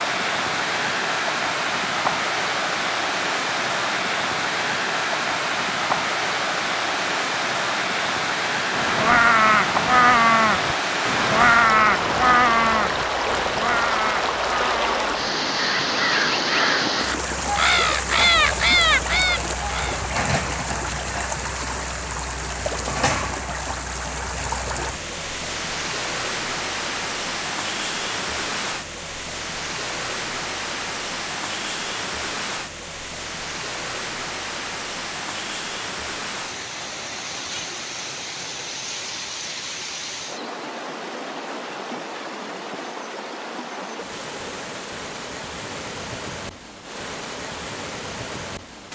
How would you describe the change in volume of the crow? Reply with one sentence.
The loudness of the crow goes down, then up.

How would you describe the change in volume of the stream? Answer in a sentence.
The volume of the stream goes down.